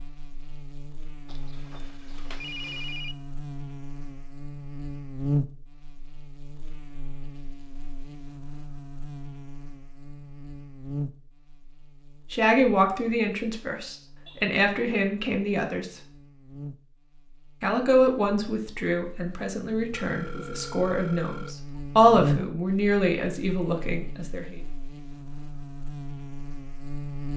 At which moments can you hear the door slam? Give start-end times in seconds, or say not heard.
not heard.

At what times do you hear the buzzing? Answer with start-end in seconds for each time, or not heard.
0.0-27.3.